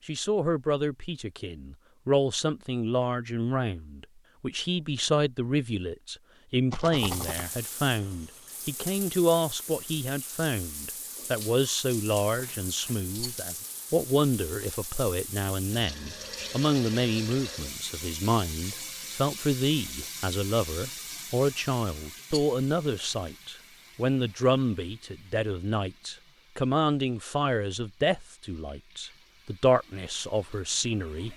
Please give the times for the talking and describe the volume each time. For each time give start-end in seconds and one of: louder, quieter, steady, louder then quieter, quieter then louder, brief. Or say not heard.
0.1-31.3 steady.